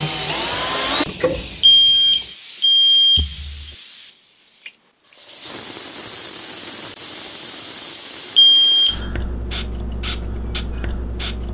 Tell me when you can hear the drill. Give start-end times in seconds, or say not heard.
0.0-2.2.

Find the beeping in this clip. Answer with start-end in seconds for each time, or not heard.
1.6-3.2, 8.3-8.9.